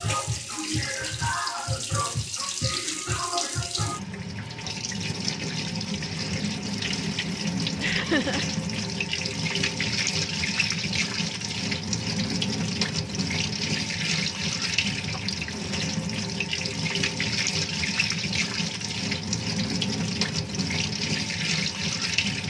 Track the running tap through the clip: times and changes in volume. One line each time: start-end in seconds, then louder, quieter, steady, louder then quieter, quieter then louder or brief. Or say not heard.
0.0-22.4 steady.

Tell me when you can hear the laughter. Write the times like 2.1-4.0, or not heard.
7.8-8.4.